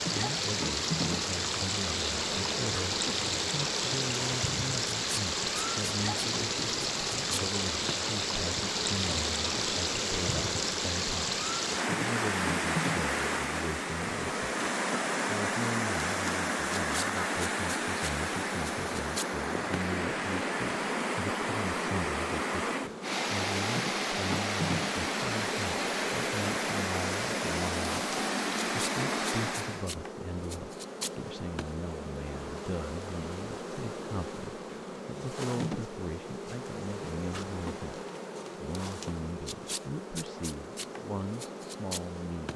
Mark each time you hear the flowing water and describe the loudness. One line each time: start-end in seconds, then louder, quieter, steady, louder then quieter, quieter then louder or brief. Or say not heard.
0.0-29.9 steady.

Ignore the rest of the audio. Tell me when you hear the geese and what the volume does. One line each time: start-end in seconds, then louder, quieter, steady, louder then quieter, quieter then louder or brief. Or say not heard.
not heard.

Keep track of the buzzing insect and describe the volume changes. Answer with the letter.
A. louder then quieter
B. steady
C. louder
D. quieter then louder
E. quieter
B.